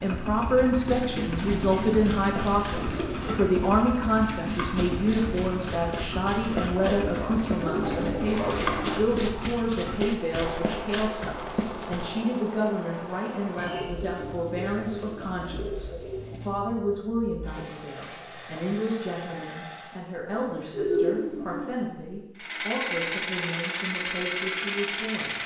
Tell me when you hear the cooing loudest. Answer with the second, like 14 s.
21 s.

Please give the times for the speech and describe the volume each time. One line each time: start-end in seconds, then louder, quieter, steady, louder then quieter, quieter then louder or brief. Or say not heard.
0.0-25.4 quieter.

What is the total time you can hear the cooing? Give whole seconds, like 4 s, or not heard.
9 s.